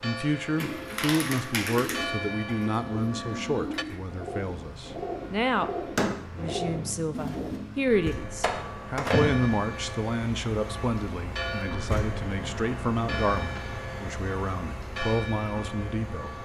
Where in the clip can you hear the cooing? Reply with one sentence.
The cooing can be heard from 0.6 to 7.6 s.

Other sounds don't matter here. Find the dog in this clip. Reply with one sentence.
The dog can't be heard in this clip.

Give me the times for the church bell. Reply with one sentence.
The church bell can be heard from 0.0 to 3.9 s and from 7.8 to 16.4 s.